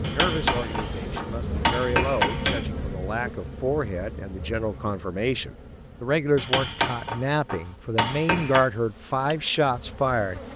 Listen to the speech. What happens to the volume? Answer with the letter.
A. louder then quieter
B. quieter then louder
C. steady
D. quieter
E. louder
E.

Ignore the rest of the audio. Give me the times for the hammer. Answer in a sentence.
You can hear the hammer from 0.0 to 2.6 s and from 6.3 to 8.7 s.